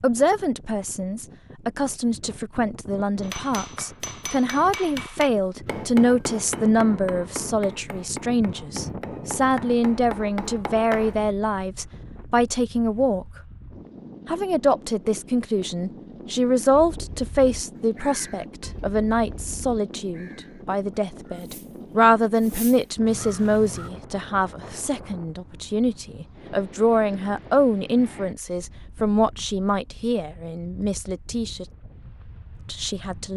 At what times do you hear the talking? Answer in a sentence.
The talking can be heard from 0.0 to 13.2 s, from 14.2 to 31.6 s and from 32.6 to 33.3 s.